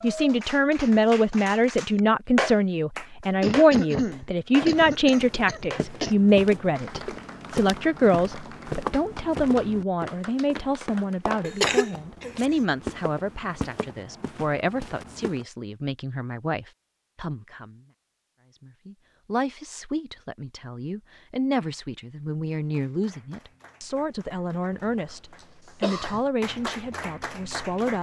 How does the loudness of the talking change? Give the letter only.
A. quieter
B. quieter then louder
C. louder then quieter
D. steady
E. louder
A.